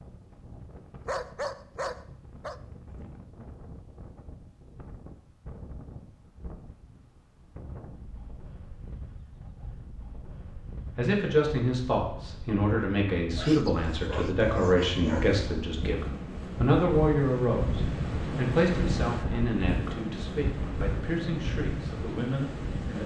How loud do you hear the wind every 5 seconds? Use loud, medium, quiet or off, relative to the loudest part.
quiet, quiet, quiet, loud, loud.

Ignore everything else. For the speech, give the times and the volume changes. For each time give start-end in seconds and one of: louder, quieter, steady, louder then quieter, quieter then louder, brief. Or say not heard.
10.9-23.0 quieter.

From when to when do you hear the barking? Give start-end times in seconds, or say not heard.
1.1-2.6, 13.3-15.3.